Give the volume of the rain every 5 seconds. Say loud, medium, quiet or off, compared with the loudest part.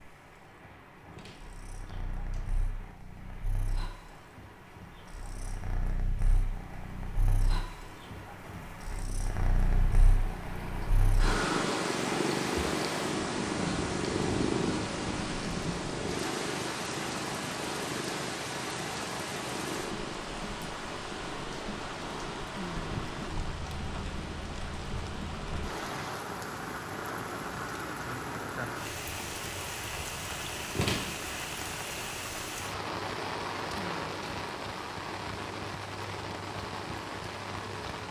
quiet, quiet, loud, loud, loud, loud, loud, loud.